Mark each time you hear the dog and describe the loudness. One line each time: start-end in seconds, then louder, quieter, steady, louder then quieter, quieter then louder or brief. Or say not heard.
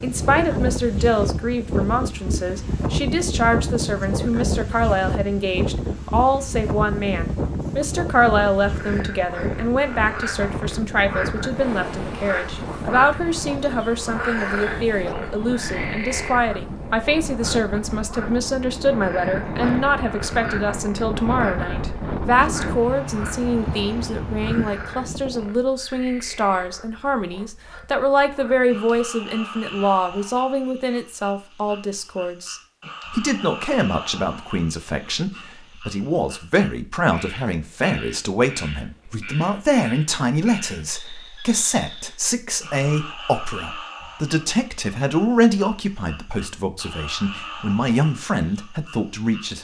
not heard.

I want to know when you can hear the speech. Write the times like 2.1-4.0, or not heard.
0.0-49.5.